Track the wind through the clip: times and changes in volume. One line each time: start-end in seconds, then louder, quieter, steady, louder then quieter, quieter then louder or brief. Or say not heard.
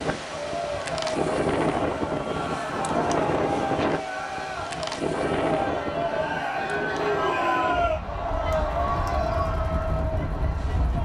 0.0-11.0 quieter.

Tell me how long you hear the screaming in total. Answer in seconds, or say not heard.
2 s.